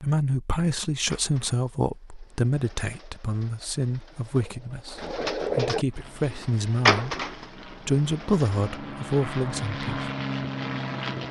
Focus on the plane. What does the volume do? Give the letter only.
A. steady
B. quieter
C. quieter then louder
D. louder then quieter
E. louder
E.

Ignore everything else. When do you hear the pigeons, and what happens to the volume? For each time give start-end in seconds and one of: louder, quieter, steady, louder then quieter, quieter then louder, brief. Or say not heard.
1.1-8.8 louder then quieter.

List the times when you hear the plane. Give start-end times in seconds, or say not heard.
5.8-11.2.